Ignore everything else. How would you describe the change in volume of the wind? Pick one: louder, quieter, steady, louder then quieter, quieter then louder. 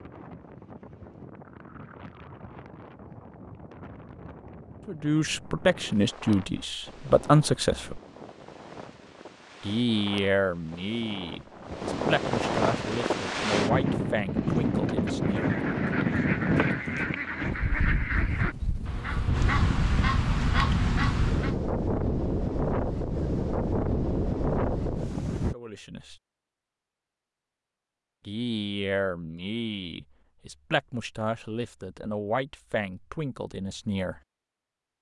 louder.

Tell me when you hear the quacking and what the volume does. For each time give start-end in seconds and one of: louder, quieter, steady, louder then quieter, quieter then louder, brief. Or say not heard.
15.2-21.6 louder.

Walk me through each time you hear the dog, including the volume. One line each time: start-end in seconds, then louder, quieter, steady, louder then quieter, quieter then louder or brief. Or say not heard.
not heard.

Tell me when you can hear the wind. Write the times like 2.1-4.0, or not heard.
0.0-25.6.